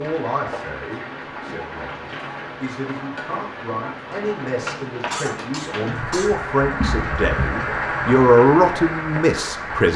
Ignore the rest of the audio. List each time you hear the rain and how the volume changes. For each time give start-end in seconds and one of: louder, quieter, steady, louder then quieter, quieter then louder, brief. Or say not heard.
0.0-9.9 louder.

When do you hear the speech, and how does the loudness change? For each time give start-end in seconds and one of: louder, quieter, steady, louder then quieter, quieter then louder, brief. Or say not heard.
0.0-9.9 louder.